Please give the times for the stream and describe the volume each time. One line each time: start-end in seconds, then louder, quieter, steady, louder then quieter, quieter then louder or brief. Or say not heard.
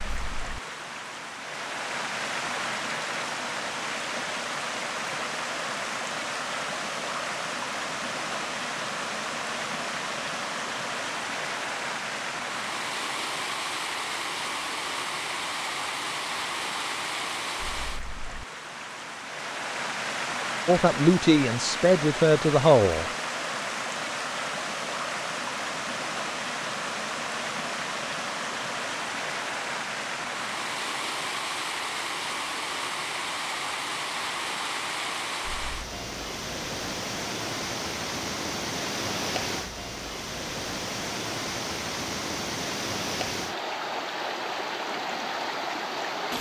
0.0-46.3 steady.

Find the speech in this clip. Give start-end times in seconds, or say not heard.
20.6-23.1.